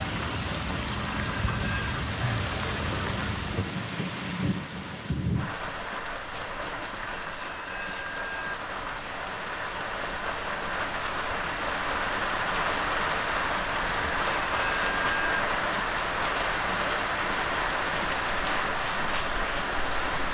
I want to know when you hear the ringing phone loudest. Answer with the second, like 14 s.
15 s.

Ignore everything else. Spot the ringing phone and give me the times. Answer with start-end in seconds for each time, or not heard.
1.3-1.9, 7.1-8.6, 13.9-15.4.